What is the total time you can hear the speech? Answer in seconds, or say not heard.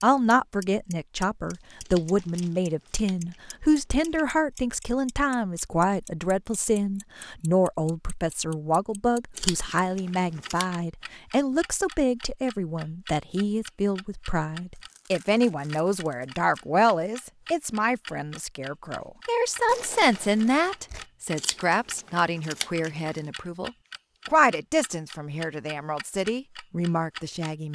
27 s.